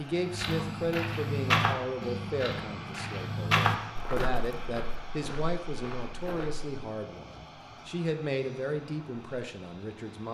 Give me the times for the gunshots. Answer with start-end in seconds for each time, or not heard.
not heard.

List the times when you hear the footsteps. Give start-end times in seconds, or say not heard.
0.1-6.7.